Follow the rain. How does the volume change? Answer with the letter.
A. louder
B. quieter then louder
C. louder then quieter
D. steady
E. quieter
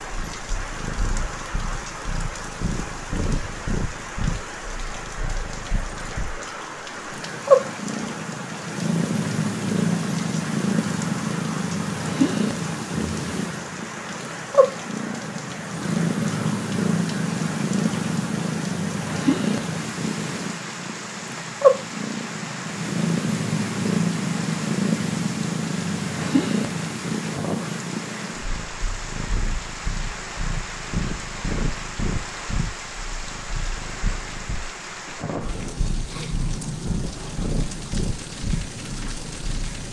D.